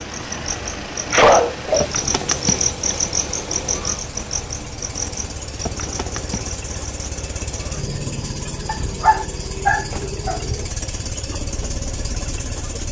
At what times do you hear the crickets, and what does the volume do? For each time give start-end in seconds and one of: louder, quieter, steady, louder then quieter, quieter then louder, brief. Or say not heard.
0.0-12.8 quieter.